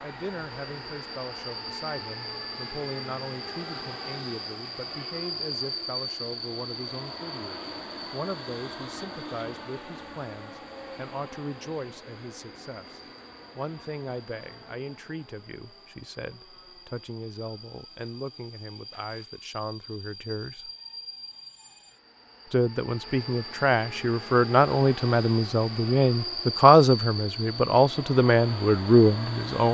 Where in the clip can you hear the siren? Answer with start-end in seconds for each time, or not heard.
not heard.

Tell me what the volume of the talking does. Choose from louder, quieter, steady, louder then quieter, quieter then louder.
louder.